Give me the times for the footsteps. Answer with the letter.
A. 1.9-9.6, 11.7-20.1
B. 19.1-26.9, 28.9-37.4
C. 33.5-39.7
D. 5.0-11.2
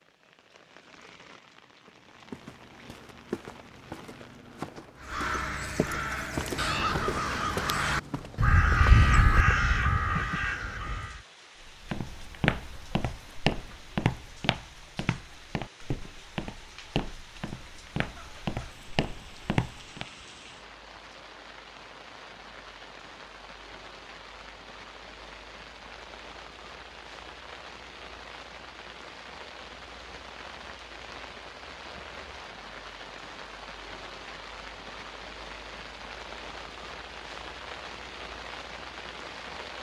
A.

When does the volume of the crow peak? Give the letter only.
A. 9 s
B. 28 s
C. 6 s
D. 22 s
A.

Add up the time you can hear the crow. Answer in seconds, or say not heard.
6 s.